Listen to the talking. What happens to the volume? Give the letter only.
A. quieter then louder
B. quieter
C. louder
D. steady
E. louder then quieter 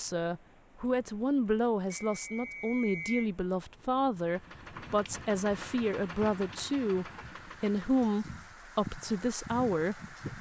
D.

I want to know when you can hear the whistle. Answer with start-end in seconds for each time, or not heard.
1.9-3.3.